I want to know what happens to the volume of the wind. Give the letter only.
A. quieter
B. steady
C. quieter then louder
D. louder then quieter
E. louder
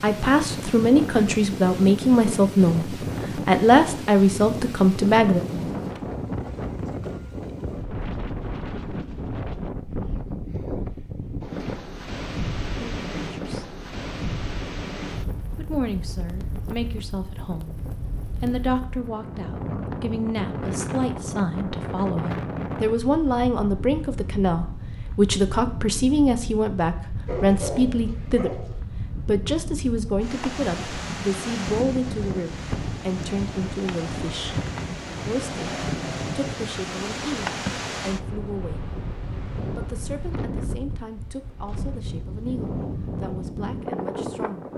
B.